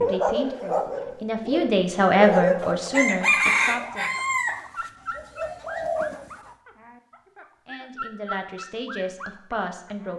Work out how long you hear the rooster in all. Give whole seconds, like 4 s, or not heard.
4 s.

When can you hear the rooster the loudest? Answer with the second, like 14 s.
3 s.